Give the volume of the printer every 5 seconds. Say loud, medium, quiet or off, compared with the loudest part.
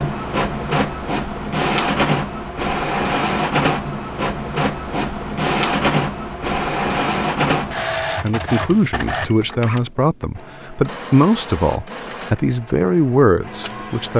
loud, loud, quiet.